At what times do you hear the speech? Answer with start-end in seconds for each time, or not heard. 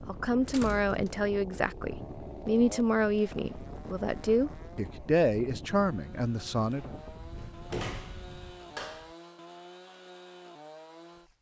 0.0-6.9.